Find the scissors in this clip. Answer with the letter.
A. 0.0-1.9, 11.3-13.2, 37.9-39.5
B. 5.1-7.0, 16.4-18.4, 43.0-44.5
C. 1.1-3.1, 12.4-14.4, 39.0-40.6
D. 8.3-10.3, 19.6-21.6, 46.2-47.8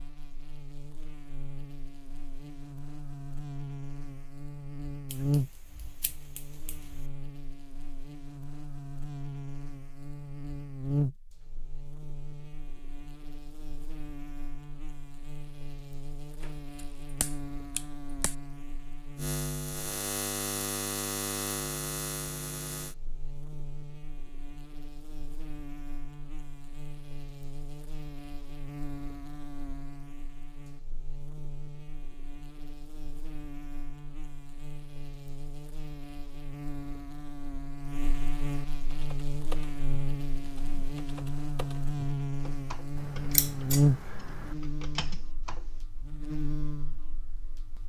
B.